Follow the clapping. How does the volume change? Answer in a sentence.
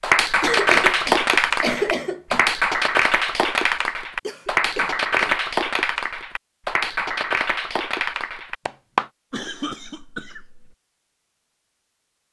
The volume of the clapping goes down.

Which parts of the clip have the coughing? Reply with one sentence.
The coughing can be heard from 0.4 to 2.5 s, from 4.2 to 5.3 s and from 9.3 to 10.8 s.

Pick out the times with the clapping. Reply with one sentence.
The clapping can be heard from 0.0 to 9.1 s.